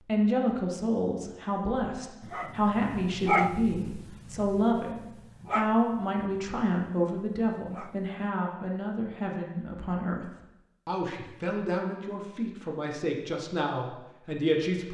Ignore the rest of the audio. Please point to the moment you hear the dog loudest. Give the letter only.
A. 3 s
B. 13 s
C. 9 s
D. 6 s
A.